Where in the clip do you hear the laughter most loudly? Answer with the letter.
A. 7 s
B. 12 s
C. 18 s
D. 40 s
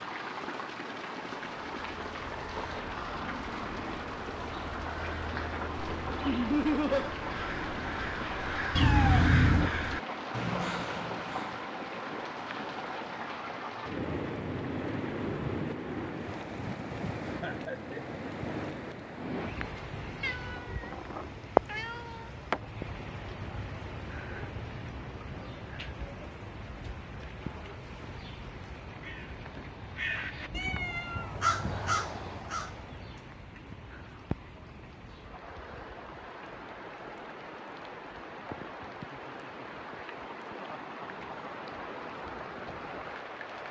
A.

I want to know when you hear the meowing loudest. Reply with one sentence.
The loudest moment of the meowing is at 9 seconds.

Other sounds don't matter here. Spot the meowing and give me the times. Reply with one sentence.
The meowing can be heard from 8.8 to 9.7 s, from 20.2 to 22.6 s and from 30.5 to 31.6 s.